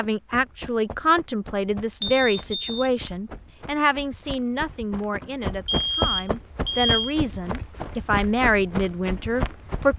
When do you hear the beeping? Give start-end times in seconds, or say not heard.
2.0-2.9, 5.2-7.2.